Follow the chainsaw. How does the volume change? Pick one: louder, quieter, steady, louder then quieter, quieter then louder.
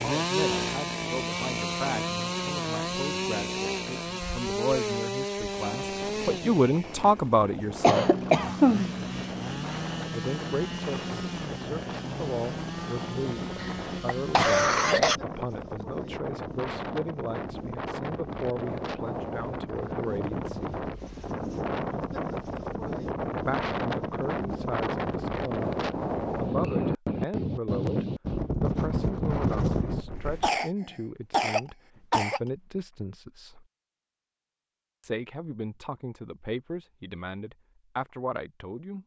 quieter.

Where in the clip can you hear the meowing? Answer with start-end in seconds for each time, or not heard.
not heard.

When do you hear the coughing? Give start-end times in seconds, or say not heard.
7.8-8.9, 13.6-15.2, 30.4-32.4.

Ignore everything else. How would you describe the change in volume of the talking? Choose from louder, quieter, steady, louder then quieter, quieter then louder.
louder then quieter.